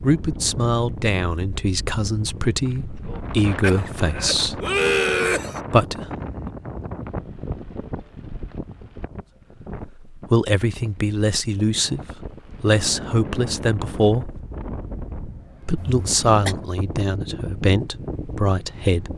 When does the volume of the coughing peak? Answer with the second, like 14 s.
5 s.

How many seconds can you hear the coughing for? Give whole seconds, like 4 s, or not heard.
3 s.